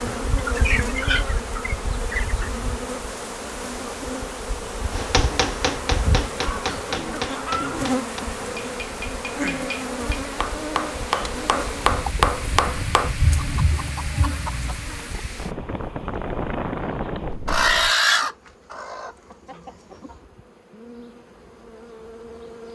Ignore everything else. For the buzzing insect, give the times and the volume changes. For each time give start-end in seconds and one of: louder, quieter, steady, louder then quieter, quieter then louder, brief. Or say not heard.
0.0-22.7 quieter.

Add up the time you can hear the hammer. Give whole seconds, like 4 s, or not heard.
8 s.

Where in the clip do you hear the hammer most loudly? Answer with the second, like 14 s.
12 s.